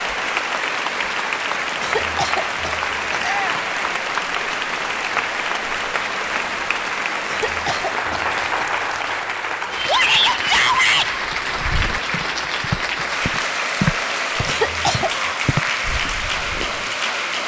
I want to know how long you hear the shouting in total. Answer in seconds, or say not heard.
2 s.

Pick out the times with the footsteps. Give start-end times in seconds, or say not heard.
11.2-16.9.